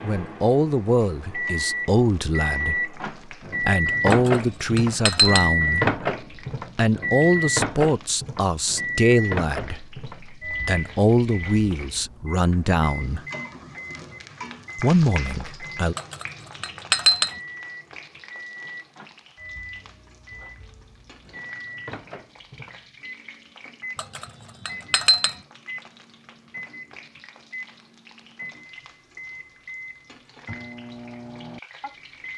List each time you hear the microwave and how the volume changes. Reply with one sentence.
You can hear the microwave from 0.0 to 32.3 s, getting quieter.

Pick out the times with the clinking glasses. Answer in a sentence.
You can hear the clinking glasses from 4.1 to 5.5 s, from 15.9 to 17.4 s and from 23.9 to 25.4 s.